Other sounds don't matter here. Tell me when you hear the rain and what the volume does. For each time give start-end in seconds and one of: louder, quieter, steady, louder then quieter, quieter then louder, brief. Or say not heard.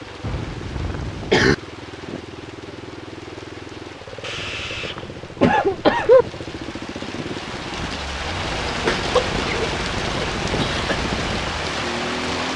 0.0-12.5 louder.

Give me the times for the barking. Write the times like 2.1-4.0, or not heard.
not heard.